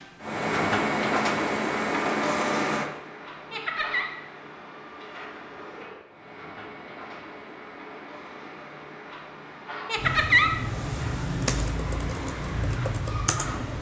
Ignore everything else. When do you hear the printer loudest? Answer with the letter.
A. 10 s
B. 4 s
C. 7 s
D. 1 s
D.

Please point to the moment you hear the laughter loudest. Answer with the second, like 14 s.
10 s.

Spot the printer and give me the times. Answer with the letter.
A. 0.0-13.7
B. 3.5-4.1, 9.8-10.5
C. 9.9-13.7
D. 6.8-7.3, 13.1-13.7
A.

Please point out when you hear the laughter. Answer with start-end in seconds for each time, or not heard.
3.5-4.1, 9.8-10.5.